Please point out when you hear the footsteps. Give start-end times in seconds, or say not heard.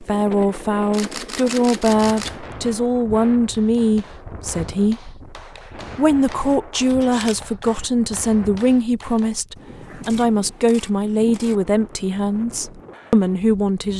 not heard.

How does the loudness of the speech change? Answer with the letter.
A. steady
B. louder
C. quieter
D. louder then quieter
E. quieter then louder
A.